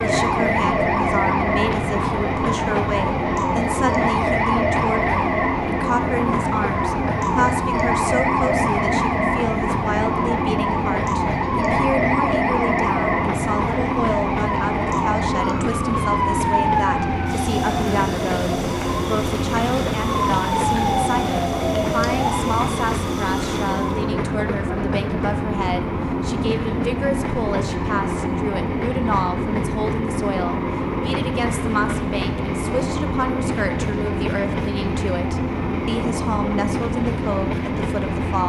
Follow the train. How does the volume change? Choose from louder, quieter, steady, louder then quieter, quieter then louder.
steady.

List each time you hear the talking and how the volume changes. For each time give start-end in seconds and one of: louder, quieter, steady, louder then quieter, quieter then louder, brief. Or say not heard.
0.0-38.4 steady.